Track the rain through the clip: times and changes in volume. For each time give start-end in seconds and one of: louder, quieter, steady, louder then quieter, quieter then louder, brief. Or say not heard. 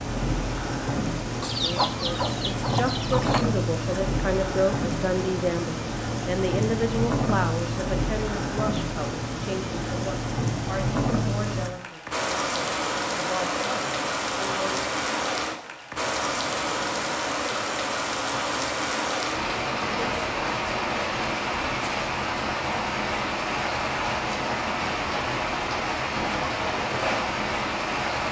0.0-28.2 steady.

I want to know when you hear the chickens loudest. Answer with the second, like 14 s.
2 s.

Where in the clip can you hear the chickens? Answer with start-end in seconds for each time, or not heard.
1.4-3.5.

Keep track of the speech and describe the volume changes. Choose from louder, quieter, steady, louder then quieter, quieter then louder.
quieter.